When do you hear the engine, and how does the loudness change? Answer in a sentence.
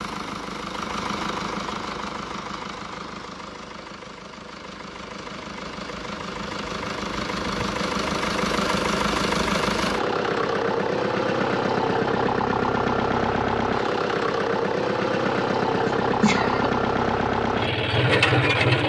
The engine can be heard from 0.0 to 18.8 s, getting louder.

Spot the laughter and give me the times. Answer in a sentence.
You can hear the laughter from 15.8 to 16.7 s.